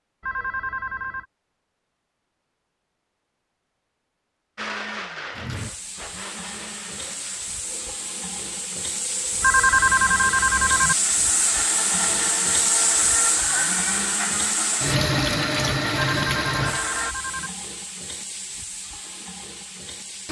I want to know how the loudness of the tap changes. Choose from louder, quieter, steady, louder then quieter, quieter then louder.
louder then quieter.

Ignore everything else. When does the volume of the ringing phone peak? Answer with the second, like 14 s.
10 s.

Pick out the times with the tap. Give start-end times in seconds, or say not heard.
5.3-20.2.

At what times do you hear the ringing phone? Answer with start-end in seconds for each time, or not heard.
0.2-1.2, 9.4-10.9, 15.9-17.5.